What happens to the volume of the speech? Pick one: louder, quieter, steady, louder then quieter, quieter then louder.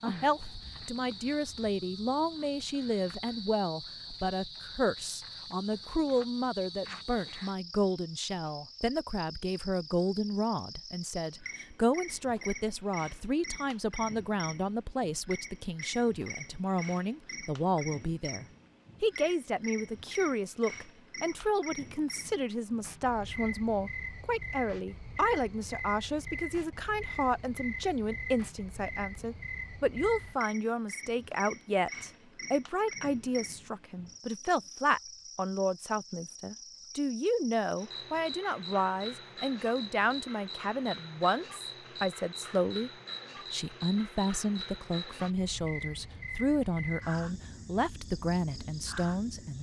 steady.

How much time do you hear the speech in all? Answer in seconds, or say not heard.
49 s.